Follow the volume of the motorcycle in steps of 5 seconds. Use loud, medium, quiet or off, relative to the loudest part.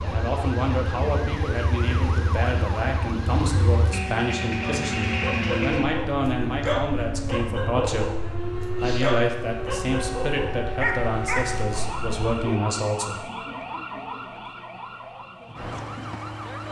loud, loud, medium, off.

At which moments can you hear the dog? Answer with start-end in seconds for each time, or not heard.
4.6-11.8.